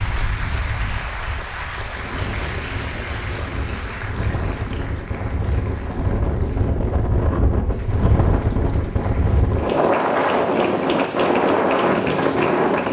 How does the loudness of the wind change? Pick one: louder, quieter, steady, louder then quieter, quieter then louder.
louder.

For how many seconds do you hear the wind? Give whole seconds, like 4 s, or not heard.
13 s.